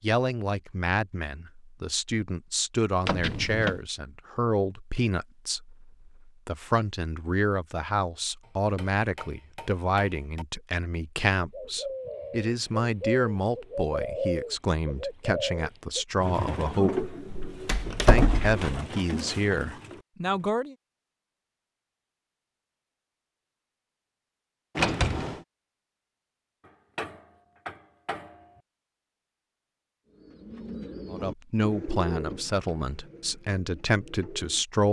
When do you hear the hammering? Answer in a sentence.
The hammering can be heard from 8.4 to 10.4 s and from 26.6 to 28.6 s.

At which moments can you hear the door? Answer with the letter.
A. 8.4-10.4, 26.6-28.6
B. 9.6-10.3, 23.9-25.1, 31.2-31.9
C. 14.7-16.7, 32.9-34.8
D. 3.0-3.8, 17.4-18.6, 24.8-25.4
D.